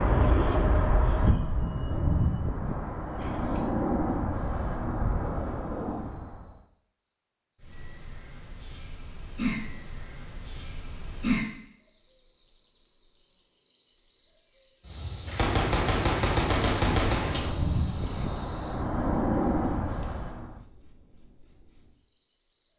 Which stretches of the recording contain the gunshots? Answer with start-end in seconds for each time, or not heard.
15.2-17.5.